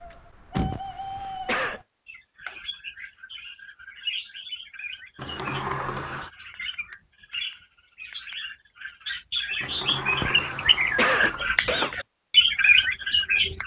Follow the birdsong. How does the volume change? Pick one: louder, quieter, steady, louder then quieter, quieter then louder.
louder.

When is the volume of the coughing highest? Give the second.
11 s.